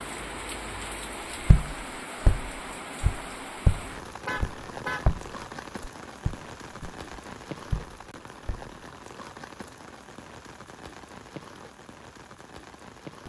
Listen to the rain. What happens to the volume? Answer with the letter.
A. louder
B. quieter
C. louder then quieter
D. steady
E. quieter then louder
B.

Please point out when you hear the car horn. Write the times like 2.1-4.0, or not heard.
4.2-5.0.